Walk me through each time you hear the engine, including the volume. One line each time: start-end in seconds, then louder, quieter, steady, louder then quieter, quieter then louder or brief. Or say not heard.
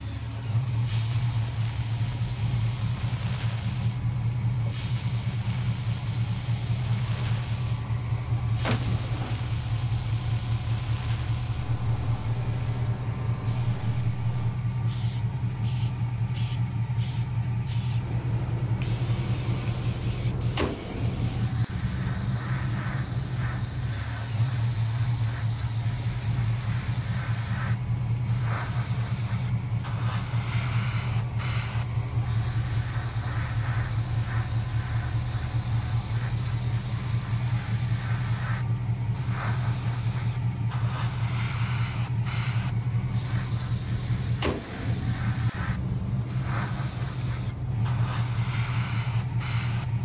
0.0-50.0 steady.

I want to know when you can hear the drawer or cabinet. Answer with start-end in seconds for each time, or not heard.
8.7-9.4.